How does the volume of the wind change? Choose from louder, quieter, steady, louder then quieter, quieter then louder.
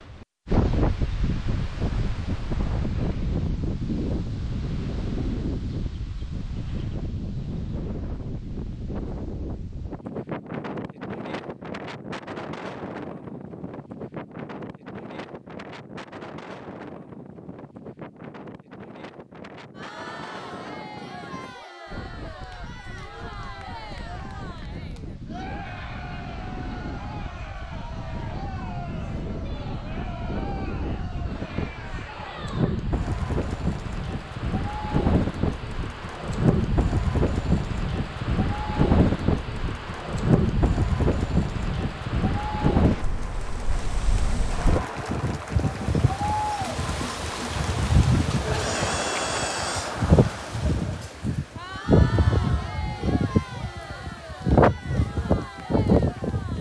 quieter then louder.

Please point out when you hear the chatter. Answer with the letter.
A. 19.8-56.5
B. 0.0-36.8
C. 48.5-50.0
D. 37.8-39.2
A.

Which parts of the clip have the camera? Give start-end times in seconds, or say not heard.
48.5-50.0.